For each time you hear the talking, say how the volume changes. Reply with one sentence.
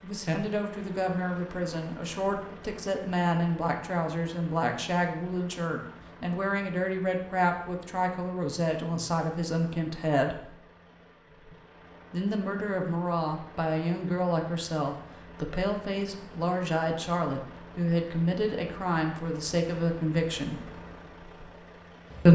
The talking can be heard from 0.0 to 10.6 s, at a steady volume; and from 12.1 to 20.7 s, at a steady volume.